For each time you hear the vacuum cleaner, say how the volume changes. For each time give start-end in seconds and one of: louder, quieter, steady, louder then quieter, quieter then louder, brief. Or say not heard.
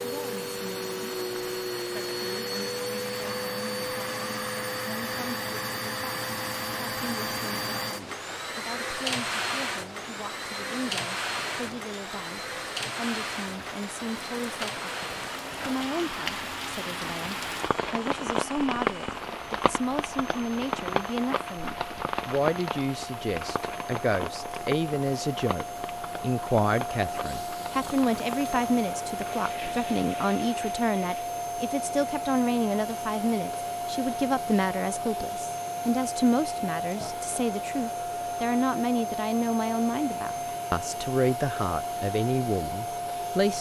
0.0-43.5 quieter then louder.